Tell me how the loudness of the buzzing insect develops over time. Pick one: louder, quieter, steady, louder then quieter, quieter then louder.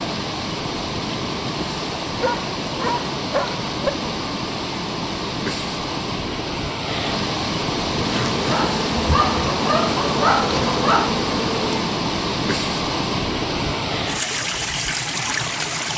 steady.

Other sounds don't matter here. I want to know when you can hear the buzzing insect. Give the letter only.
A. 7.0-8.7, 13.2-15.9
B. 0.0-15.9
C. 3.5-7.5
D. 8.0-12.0
D.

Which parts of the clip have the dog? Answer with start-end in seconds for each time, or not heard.
2.1-3.9, 8.4-11.1.